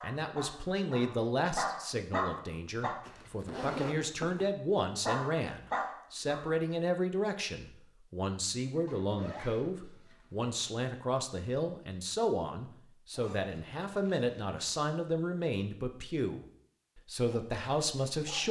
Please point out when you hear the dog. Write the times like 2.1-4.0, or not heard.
0.0-3.0, 5.0-6.6, 17.1-18.4.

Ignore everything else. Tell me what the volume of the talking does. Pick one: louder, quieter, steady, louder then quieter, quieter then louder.
steady.